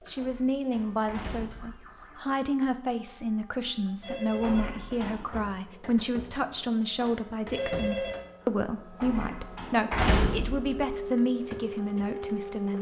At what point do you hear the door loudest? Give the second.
10 s.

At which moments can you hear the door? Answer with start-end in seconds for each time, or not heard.
0.1-1.8, 4.4-5.4, 9.0-10.7.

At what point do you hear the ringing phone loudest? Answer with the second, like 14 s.
8 s.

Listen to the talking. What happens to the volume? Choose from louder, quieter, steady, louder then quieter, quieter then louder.
steady.